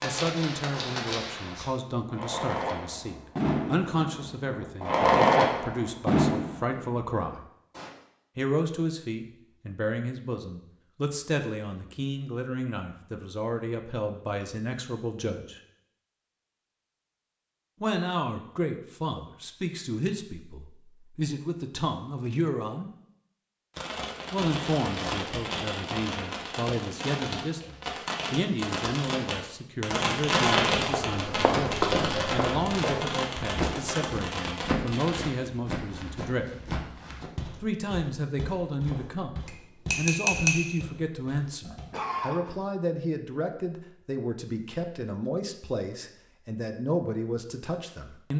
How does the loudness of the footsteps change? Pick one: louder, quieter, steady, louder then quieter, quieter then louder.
quieter.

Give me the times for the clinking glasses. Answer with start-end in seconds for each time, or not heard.
39.5-40.8.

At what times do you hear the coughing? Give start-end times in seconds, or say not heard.
41.6-42.5.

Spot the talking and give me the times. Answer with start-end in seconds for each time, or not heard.
0.0-7.4, 8.3-15.6, 17.8-22.9, 24.3-36.5, 37.5-48.3.